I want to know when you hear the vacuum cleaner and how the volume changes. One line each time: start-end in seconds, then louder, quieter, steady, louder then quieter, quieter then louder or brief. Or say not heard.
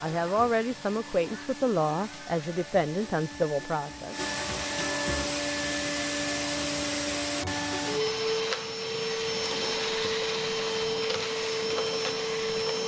0.0-12.8 louder.